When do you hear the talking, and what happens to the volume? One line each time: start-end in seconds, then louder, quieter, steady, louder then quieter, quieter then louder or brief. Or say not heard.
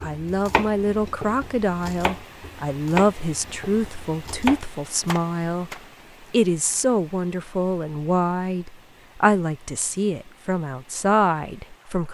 0.0-12.0 steady.